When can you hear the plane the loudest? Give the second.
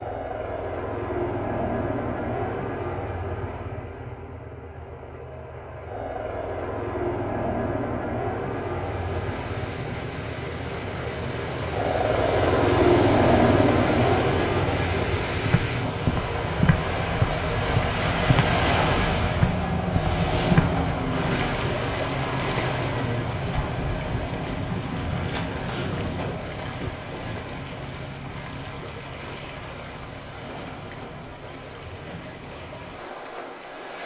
13 s.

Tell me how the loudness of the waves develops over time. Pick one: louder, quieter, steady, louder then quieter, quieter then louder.
louder then quieter.